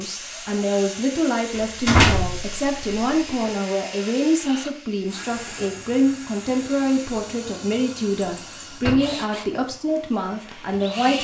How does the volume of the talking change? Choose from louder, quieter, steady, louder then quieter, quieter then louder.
steady.